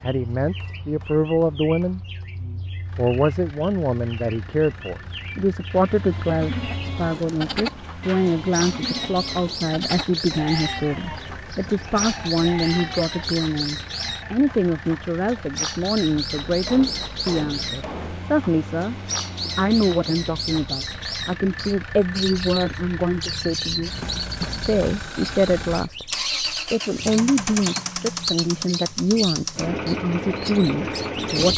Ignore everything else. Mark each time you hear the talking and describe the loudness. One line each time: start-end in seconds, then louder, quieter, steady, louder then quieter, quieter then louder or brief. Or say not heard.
0.0-31.5 steady.